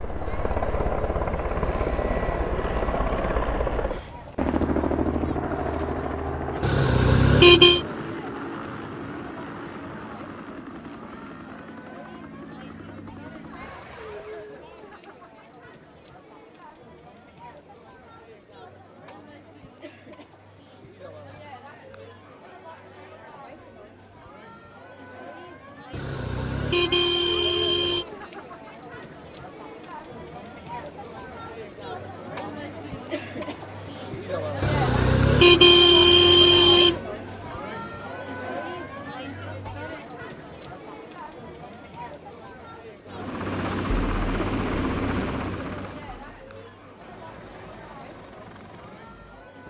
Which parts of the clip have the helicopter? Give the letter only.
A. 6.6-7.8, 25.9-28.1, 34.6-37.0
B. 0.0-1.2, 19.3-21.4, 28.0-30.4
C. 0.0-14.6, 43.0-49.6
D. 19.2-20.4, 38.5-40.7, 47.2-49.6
C.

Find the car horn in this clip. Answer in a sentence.
The car horn can be heard from 6.6 to 7.8 s, from 25.9 to 28.1 s and from 34.6 to 37.0 s.